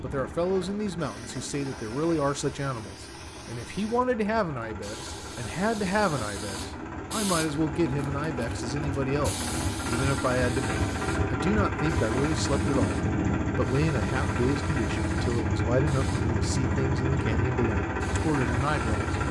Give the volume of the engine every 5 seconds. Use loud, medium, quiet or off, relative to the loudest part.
quiet, medium, loud, loud.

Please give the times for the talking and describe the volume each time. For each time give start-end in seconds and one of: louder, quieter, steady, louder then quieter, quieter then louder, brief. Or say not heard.
0.0-19.1 steady.